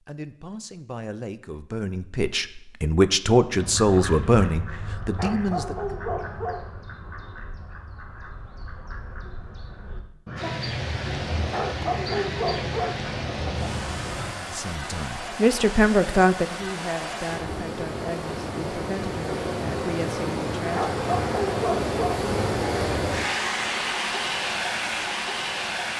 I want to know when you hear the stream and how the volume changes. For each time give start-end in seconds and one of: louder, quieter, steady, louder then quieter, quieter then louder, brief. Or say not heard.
10.3-25.9 louder.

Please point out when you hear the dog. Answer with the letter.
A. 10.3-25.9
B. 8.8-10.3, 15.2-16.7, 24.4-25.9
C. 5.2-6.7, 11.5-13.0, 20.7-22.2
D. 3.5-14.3
C.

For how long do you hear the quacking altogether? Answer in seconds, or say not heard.
11 s.